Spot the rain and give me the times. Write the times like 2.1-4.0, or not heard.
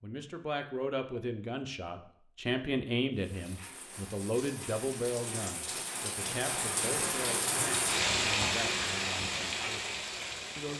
3.1-10.7.